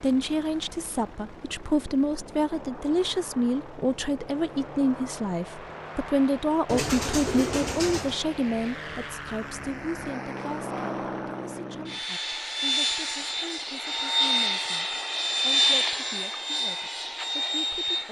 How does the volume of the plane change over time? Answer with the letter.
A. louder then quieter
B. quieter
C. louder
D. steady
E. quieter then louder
C.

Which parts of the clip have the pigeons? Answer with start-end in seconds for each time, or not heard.
6.7-8.2.